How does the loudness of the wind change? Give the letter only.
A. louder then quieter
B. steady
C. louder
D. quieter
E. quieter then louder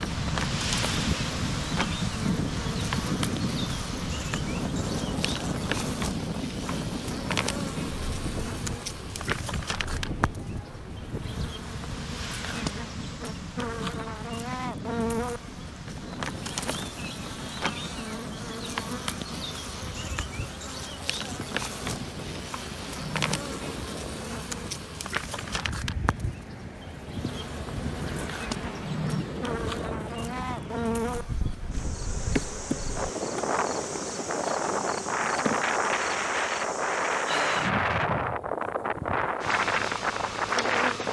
E.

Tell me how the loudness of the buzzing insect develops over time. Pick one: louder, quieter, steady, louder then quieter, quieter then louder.
steady.